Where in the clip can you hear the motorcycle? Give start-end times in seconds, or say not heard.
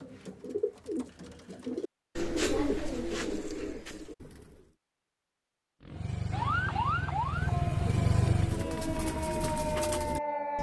5.8-8.7.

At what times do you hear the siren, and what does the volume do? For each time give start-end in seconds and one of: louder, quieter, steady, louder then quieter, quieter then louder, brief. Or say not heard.
6.3-10.5 quieter then louder.